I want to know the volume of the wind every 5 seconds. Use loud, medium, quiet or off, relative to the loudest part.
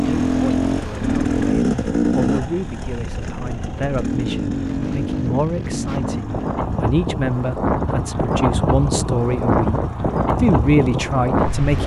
quiet, loud, loud.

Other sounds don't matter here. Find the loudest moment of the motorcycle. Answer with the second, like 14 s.
2 s.